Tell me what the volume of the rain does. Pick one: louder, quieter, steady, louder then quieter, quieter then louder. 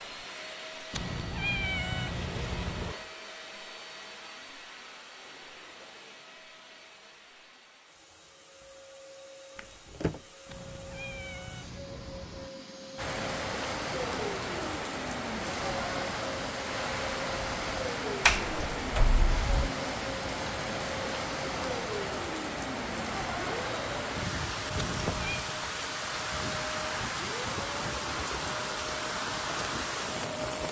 steady.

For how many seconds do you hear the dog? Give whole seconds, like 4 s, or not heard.
not heard.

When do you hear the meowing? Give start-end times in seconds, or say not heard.
0.9-3.0, 10.4-12.5, 24.8-25.4.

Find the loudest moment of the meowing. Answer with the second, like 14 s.
2 s.